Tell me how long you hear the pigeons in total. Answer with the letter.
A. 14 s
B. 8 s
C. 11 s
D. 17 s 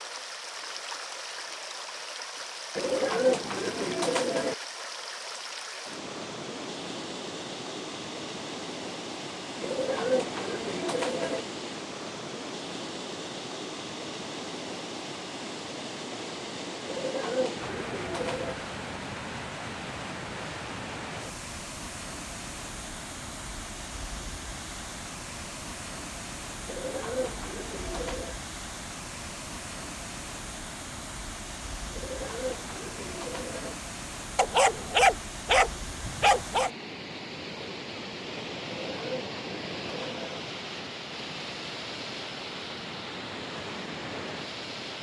C.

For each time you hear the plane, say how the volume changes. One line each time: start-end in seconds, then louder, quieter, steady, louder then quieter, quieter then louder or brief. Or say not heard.
not heard.